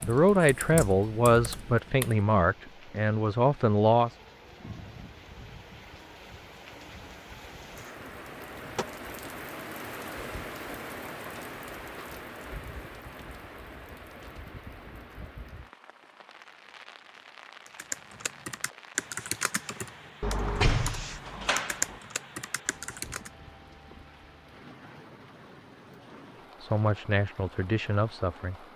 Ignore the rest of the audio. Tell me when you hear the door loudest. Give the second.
21 s.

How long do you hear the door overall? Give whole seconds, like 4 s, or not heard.
3 s.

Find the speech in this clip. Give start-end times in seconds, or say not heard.
0.0-4.2, 26.6-28.6.